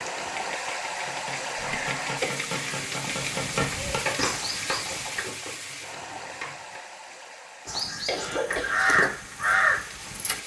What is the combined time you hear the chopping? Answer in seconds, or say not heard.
6 s.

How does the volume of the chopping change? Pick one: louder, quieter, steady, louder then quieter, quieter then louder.
louder then quieter.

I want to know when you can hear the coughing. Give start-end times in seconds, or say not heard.
1.6-2.4, 7.7-8.8.